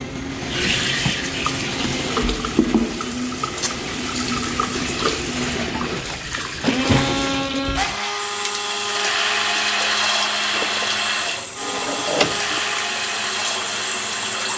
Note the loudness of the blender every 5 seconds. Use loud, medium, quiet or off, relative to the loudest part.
medium, loud, loud.